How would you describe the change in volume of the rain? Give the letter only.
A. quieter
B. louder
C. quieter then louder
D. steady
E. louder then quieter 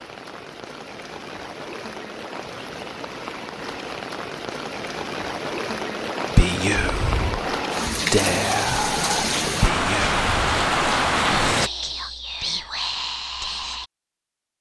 B.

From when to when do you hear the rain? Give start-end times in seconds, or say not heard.
0.0-11.7.